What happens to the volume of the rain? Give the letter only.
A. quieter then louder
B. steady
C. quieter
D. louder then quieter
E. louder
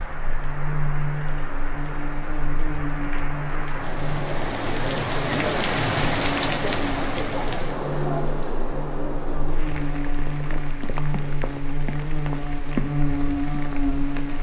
D.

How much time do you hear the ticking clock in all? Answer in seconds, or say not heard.
not heard.